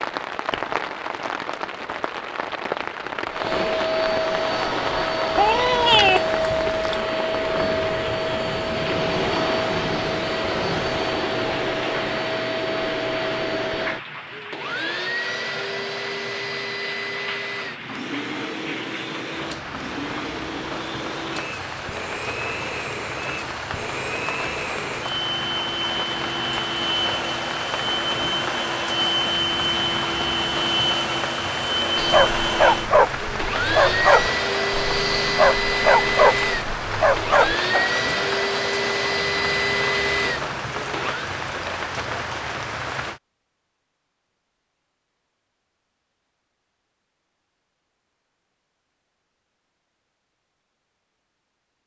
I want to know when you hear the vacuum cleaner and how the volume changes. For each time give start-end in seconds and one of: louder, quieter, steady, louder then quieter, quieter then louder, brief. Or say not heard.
3.2-41.3 quieter then louder.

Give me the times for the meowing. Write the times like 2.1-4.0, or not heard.
5.3-7.0.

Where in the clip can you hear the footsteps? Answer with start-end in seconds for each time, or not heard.
not heard.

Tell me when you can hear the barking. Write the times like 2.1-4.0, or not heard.
31.9-37.9.